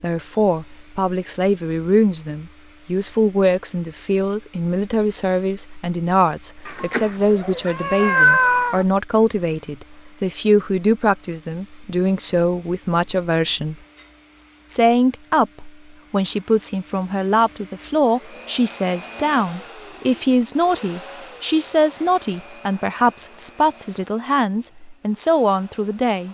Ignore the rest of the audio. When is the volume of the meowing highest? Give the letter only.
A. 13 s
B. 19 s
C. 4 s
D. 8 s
D.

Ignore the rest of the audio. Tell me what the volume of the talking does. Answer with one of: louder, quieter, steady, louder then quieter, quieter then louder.
steady.